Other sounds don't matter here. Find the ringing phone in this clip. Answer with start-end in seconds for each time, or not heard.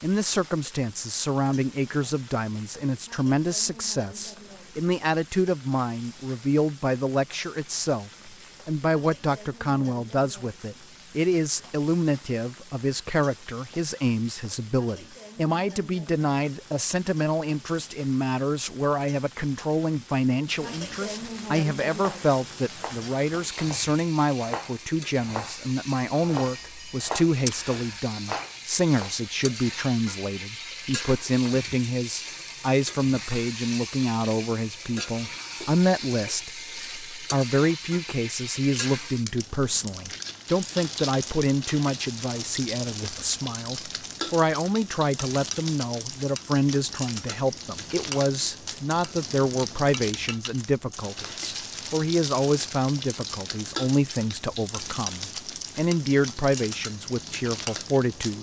26.3-28.0.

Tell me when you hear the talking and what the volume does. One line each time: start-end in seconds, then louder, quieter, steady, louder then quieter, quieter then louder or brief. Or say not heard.
0.0-58.3 steady.